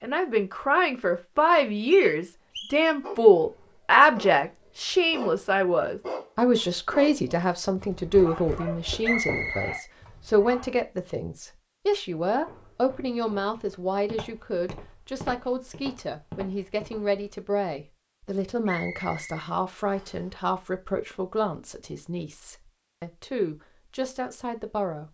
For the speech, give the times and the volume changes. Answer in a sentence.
The speech can be heard from 0.0 to 25.0 s, getting quieter.